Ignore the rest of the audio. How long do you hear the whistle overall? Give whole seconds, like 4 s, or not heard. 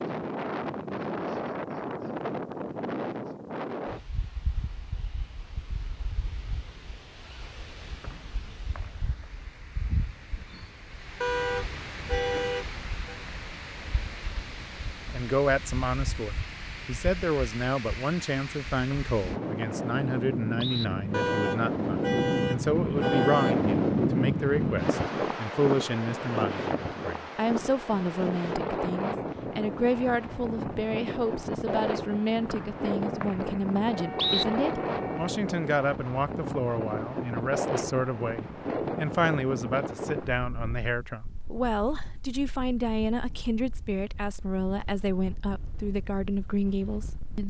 5 s.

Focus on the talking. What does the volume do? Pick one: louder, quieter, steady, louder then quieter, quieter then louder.
steady.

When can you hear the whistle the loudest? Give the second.
34 s.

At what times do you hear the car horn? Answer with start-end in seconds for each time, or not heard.
11.2-13.2, 21.1-23.6, 33.9-35.4.